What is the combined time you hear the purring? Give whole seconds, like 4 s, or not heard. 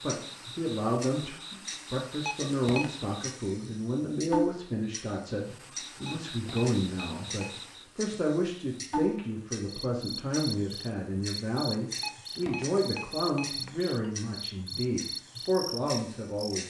not heard.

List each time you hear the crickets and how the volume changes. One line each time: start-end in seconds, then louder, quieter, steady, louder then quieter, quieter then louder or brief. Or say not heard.
0.0-16.6 louder.